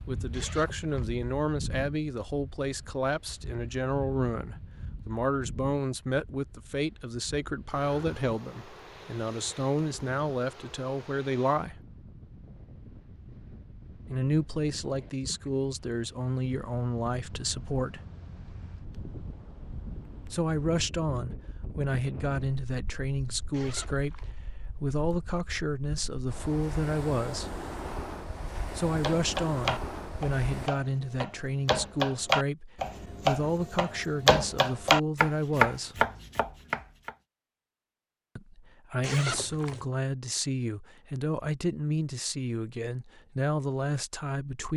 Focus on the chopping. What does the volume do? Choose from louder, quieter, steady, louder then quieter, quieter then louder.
louder.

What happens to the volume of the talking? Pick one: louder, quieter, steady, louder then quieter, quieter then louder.
steady.